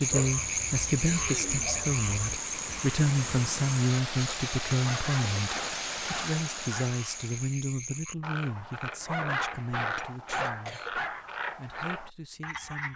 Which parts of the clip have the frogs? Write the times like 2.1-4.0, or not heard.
0.0-12.9.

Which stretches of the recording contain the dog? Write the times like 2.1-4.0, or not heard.
0.1-2.4, 4.8-7.0, 9.0-11.2.